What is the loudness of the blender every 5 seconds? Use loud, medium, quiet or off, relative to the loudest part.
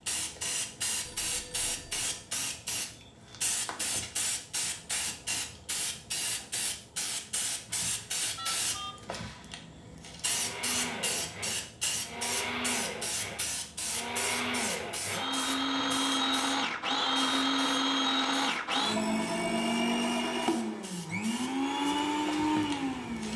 off, off, medium, loud, loud.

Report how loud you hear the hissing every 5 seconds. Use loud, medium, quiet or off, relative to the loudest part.
loud, loud, loud, medium, medium.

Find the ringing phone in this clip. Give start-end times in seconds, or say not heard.
1.1-2.1, 8.3-9.1, 18.9-20.5.